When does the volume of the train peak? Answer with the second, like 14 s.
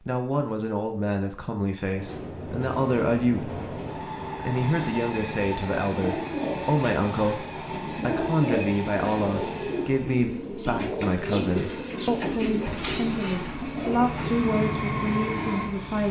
15 s.